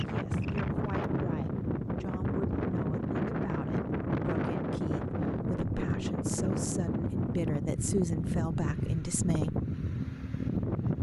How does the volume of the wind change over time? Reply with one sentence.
The volume of the wind stays about the same.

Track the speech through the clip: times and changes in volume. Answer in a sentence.
The speech can be heard from 0.0 to 9.6 s, getting louder.